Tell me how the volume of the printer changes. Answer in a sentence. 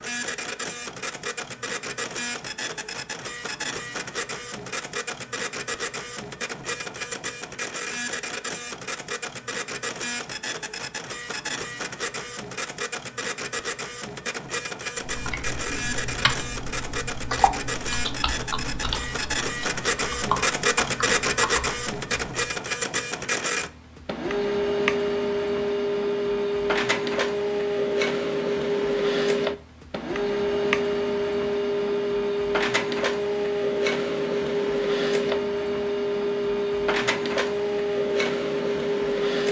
The volume of the printer goes up.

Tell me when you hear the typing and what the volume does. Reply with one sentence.
You can hear the typing from 15.1 to 22.4 s, at a steady volume.